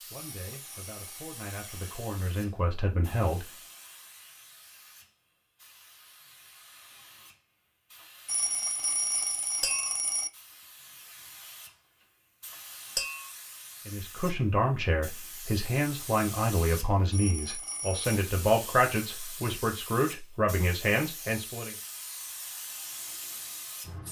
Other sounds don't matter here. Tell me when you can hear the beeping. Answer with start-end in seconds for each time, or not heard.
0.1-2.0, 8.2-10.3, 17.1-18.2.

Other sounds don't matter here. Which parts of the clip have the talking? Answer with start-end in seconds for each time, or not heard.
0.1-3.5, 13.8-21.8.